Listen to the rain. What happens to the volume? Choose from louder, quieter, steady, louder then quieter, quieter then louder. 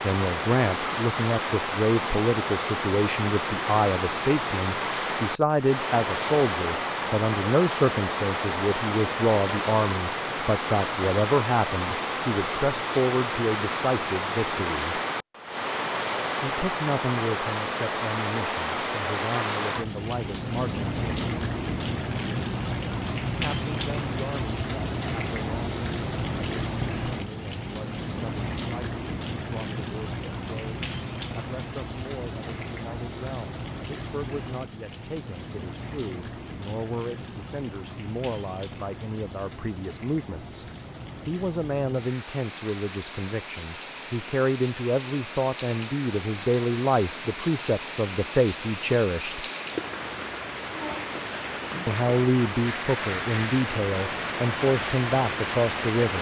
quieter then louder.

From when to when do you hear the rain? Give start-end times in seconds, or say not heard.
0.0-56.1.